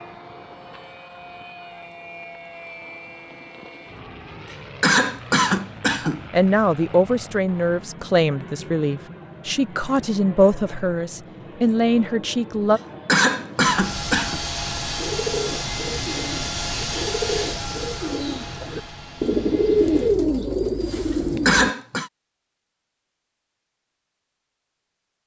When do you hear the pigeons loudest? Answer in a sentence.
The loudest moment of the pigeons is at 20 seconds.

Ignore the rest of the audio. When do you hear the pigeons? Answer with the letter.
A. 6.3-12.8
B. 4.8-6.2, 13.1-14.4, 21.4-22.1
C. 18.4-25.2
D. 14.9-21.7
D.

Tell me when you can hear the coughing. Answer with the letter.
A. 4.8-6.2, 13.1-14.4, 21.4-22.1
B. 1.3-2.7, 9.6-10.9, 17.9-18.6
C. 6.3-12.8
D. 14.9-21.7
A.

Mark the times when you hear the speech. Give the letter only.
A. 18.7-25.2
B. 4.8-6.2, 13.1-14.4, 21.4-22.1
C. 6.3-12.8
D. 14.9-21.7
C.